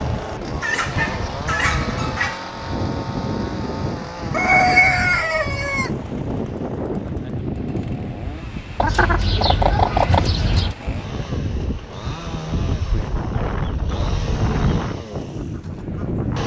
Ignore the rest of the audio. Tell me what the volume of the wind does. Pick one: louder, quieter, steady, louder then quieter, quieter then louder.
steady.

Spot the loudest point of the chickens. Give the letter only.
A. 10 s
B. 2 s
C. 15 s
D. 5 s
D.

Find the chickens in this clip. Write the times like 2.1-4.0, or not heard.
0.6-2.5, 4.3-5.9, 8.8-10.8, 12.7-14.8.